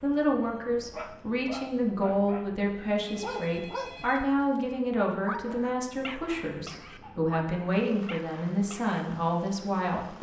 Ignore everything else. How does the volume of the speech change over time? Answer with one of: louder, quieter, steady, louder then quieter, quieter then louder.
steady.